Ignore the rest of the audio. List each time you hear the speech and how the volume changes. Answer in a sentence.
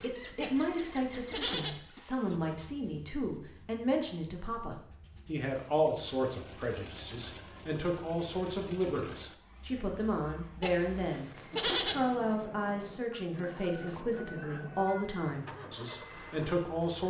You can hear the speech from 0.0 to 17.0 s, at a steady volume.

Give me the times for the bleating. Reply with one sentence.
You can hear the bleating from 0.4 to 1.8 s and from 10.6 to 12.0 s.